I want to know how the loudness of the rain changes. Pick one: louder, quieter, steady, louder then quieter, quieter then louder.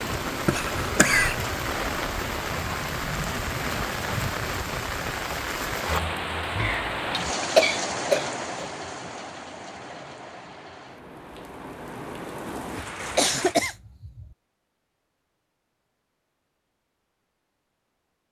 quieter.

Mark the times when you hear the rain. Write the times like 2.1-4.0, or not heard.
0.0-13.6.